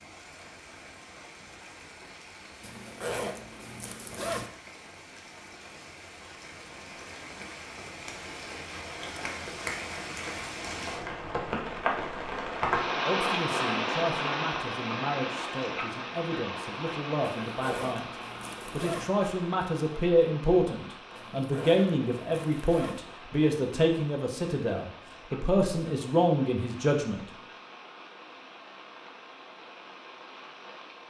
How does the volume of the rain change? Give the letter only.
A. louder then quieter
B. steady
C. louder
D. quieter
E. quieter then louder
A.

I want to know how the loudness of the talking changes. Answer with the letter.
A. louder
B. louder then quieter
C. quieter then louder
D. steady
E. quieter
A.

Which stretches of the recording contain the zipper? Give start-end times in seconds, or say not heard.
2.6-4.5, 17.4-19.1, 21.1-23.0.